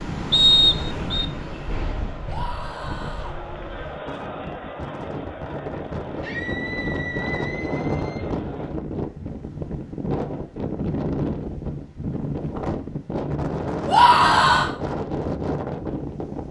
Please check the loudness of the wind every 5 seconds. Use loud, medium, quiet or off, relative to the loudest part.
medium, loud, loud, loud.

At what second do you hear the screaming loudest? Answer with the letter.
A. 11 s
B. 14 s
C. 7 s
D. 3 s
B.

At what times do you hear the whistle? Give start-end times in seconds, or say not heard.
0.3-1.2.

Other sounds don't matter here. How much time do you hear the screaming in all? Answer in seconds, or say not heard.
4 s.